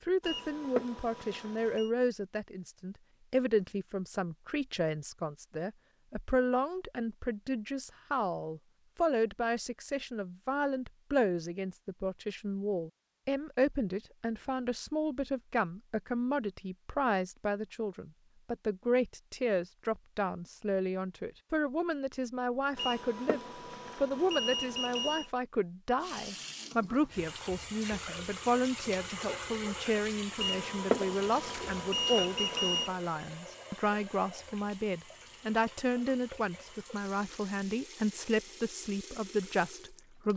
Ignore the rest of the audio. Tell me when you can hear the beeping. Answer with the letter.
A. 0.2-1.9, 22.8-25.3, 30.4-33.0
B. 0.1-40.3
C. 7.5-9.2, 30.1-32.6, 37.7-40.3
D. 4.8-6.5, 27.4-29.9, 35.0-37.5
A.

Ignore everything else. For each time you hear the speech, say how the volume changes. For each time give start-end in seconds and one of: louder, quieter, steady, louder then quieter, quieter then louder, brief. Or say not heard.
0.1-40.3 steady.